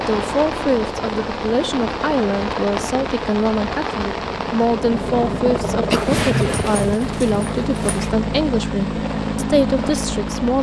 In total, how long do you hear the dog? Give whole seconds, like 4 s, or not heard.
2 s.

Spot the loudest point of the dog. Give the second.
6 s.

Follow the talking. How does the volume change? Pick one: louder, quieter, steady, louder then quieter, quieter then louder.
steady.